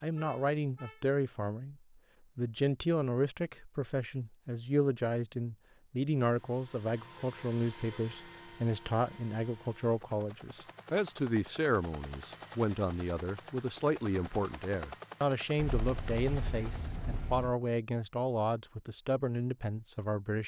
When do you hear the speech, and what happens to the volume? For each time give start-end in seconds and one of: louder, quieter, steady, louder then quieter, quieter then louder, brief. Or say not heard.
0.0-1.8 brief
2.4-20.4 steady.